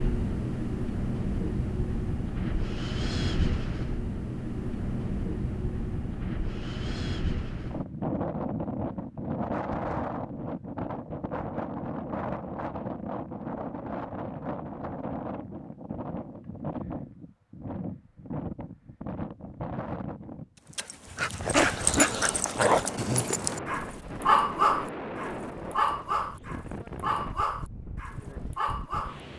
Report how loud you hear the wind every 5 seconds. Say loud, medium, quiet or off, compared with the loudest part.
loud, loud, loud, medium, medium, medium.